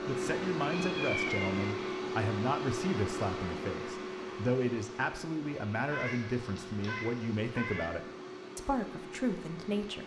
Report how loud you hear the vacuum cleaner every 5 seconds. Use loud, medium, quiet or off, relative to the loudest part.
loud, medium.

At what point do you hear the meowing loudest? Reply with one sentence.
The volume of the meowing peaks at 1 second.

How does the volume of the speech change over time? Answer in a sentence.
The loudness of the speech stays about the same.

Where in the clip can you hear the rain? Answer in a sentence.
You can't hear the rain here.